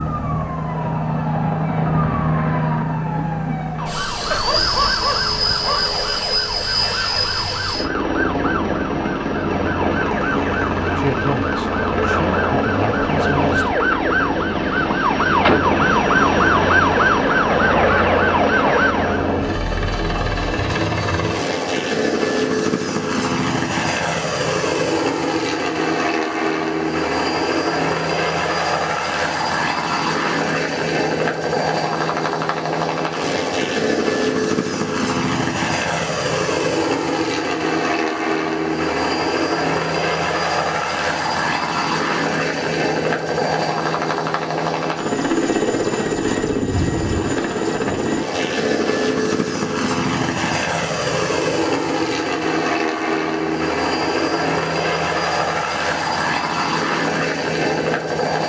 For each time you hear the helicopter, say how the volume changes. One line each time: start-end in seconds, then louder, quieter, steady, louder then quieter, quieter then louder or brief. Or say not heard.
0.0-58.4 steady.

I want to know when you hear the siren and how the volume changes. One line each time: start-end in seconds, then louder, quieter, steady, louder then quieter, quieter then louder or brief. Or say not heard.
0.0-19.3 louder.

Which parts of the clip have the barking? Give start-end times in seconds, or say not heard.
4.3-5.9.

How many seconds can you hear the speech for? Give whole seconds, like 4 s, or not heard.
3 s.